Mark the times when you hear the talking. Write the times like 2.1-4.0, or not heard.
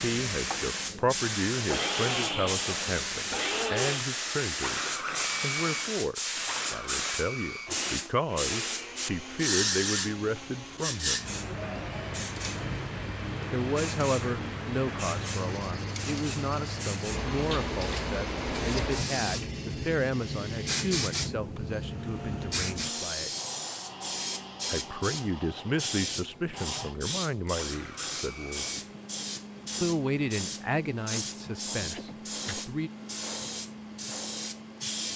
0.0-11.3, 13.5-23.3, 24.6-28.8, 29.8-32.9.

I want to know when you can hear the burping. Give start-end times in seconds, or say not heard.
not heard.